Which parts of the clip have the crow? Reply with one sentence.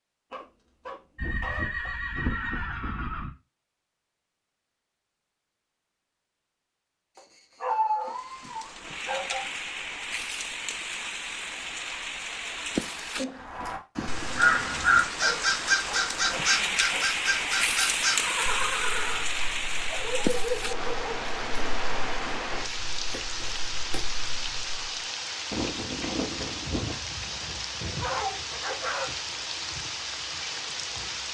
You can hear the crow from 13.4 to 24.9 s.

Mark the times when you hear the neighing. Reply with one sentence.
You can hear the neighing from 1.1 to 3.3 s, from 18.1 to 19.2 s and from 25.5 to 26.9 s.